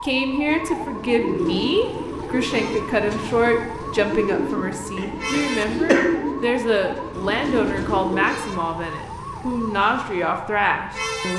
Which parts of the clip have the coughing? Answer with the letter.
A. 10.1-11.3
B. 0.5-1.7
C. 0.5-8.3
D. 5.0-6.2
D.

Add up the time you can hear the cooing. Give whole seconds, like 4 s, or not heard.
8 s.